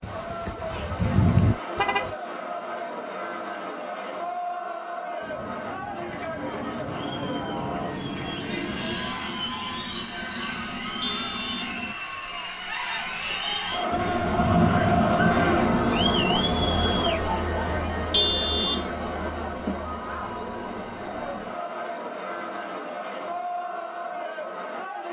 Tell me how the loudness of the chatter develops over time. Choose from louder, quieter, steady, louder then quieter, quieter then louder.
louder then quieter.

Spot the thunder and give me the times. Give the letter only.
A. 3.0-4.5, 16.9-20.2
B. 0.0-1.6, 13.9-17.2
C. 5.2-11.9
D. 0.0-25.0
B.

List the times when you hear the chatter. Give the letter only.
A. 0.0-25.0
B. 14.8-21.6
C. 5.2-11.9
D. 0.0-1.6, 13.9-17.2
A.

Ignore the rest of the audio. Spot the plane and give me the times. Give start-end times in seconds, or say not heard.
5.2-11.9.